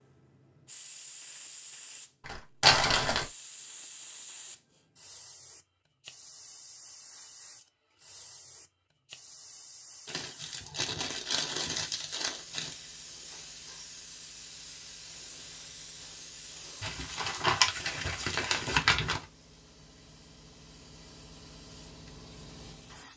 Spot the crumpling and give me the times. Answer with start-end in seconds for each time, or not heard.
2.2-3.2, 10.1-12.8, 16.8-19.2.